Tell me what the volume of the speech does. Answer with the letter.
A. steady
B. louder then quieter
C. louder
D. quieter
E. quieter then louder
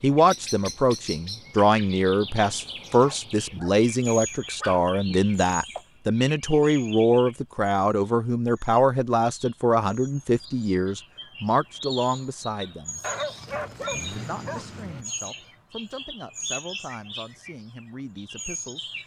D.